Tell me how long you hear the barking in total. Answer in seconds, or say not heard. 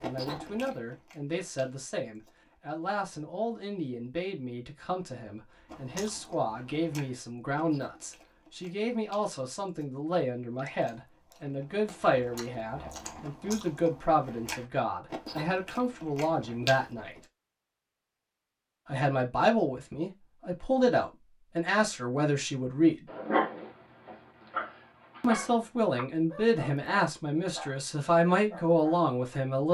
6 s.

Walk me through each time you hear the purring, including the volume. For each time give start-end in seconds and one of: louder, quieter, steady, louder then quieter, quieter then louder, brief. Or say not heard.
not heard.